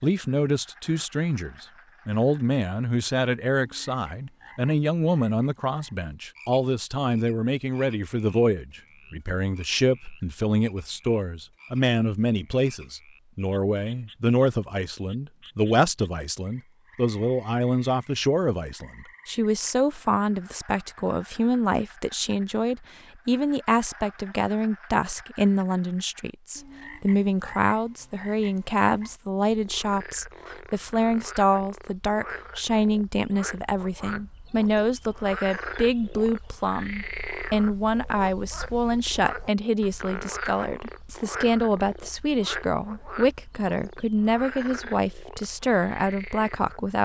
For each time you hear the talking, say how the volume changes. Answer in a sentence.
The talking can be heard from 0.0 to 47.0 s, at a steady volume.